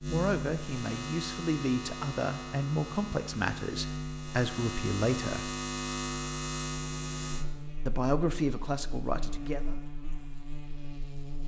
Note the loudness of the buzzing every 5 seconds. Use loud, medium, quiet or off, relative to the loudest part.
loud, loud, medium.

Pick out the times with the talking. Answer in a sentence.
You can hear the talking from 0.1 to 5.5 s and from 7.8 to 9.8 s.